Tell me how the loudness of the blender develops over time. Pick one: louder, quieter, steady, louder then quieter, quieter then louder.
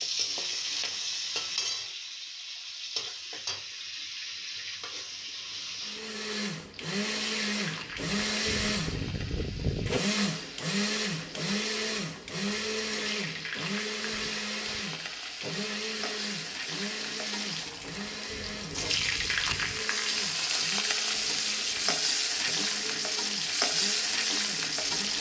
quieter.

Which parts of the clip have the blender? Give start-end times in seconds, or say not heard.
5.8-25.1.